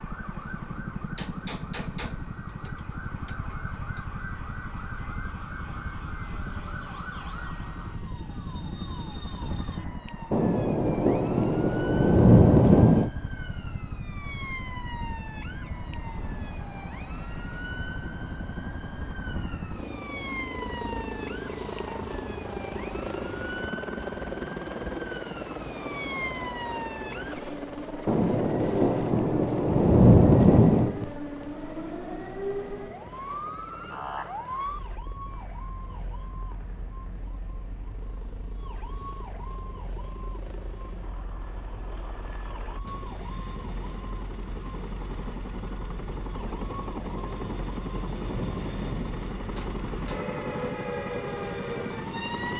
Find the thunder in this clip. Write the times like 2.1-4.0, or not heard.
10.3-13.1, 28.1-31.1, 46.4-50.2.